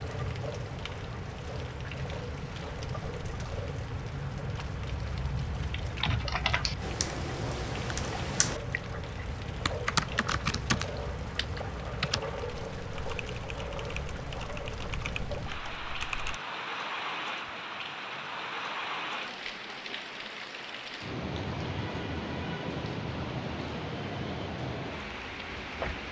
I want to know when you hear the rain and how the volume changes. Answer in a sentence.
You can hear the rain from 0.0 to 26.0 s, at a steady volume.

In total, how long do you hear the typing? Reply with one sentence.
The typing can be heard for 11 seconds in total.